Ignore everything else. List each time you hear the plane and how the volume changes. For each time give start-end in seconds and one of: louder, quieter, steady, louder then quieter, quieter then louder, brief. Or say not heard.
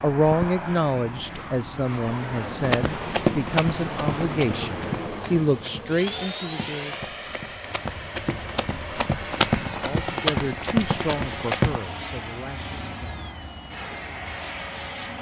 0.0-15.1 steady.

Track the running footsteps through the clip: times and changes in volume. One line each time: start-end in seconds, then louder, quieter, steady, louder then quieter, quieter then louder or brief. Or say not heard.
2.6-11.8 quieter then louder.